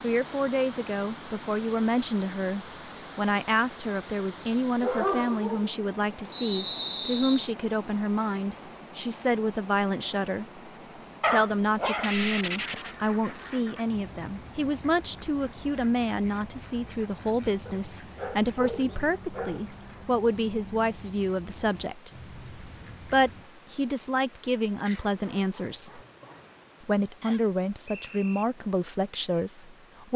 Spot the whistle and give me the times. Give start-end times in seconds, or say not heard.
6.3-7.5, 27.2-28.4.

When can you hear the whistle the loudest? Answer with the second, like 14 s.
7 s.